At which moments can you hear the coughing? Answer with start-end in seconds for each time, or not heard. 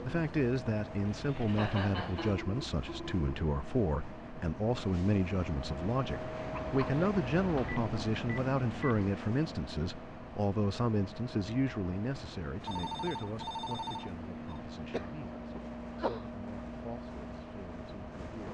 1.1-2.4, 6.5-7.8, 14.9-16.2.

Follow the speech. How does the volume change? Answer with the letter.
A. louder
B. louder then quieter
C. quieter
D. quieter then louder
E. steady
C.